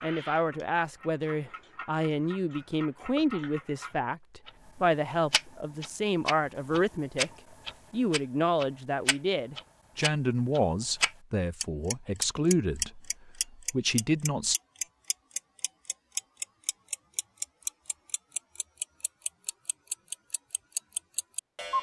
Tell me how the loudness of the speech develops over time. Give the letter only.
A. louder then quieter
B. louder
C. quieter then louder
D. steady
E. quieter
D.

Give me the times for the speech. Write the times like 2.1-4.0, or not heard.
0.0-7.3, 7.9-14.6.